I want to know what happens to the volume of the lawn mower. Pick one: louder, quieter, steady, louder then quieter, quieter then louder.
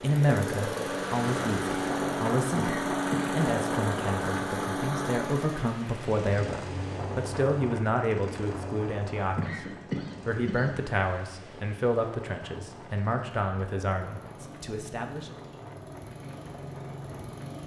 quieter then louder.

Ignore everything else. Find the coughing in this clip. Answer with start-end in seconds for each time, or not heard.
2.5-3.4, 9.3-10.7.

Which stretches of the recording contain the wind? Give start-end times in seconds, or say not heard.
0.0-17.6.